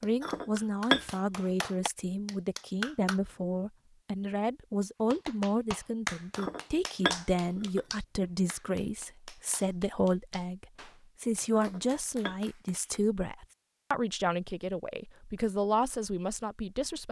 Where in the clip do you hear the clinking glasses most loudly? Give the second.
1 s.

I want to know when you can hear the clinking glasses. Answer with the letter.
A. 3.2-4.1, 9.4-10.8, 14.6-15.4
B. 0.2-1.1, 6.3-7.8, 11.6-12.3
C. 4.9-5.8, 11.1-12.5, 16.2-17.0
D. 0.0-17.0
B.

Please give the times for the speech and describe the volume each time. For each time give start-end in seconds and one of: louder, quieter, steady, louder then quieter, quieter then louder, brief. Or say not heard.
0.0-17.0 steady.